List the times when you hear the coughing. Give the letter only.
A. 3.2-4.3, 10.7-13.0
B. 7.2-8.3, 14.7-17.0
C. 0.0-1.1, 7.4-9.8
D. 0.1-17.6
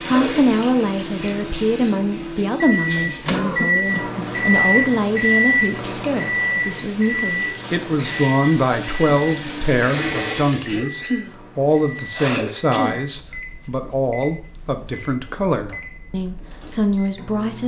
A.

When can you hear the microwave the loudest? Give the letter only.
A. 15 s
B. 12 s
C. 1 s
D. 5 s
D.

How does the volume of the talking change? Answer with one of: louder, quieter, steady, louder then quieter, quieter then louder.
steady.